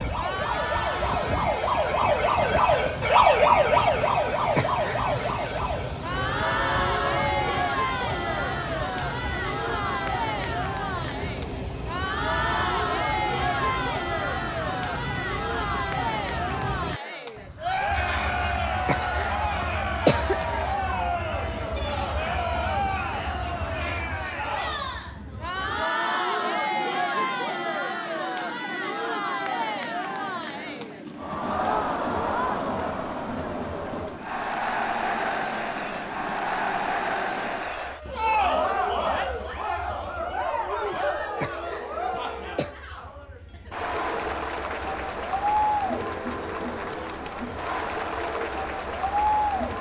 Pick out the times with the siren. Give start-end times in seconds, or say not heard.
0.0-7.6.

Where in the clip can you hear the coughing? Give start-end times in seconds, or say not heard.
4.5-5.3, 18.9-20.5, 41.4-42.8.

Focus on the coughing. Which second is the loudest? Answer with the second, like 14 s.
20 s.